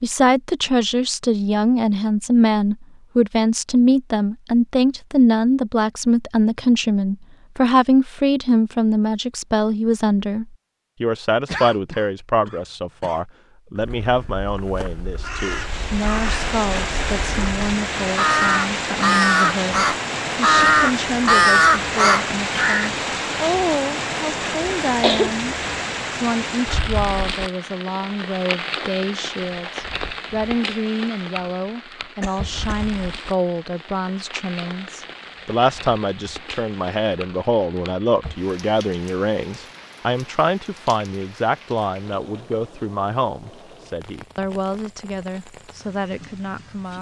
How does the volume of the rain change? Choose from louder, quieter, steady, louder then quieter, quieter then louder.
quieter.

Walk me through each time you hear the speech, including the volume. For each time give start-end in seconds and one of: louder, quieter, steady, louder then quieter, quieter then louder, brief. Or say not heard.
0.0-46.9 quieter.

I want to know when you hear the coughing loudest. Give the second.
25 s.